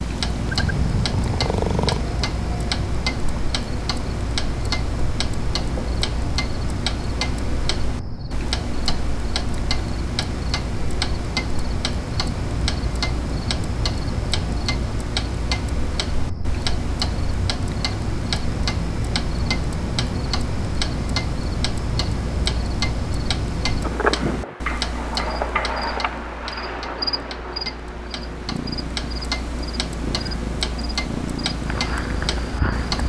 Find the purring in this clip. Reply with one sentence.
The purring can be heard from 0.0 to 2.0 s and from 28.1 to 33.0 s.